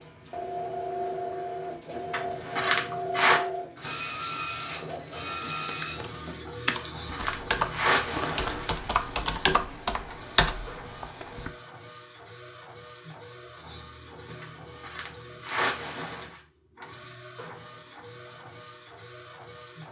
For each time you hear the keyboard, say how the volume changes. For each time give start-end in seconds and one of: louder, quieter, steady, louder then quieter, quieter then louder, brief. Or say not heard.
5.6-11.5 steady.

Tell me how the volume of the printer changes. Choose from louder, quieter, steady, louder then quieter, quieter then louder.
quieter.